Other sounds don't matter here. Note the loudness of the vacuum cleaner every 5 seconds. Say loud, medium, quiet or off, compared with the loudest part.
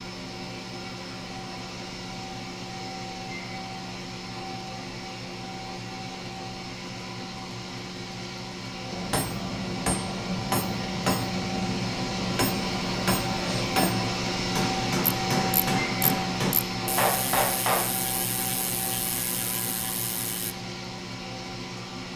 medium, medium, loud, loud, medium.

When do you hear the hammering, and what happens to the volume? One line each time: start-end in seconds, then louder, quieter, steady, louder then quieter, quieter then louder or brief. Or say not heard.
8.9-17.9 steady.